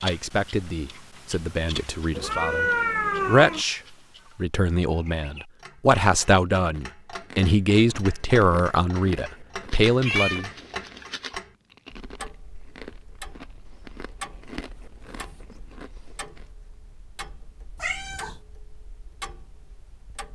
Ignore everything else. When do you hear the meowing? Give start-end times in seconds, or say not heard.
2.1-3.6, 9.7-11.3, 17.8-18.4.